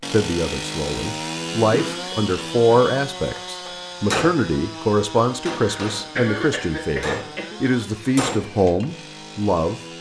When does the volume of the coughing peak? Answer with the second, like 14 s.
6 s.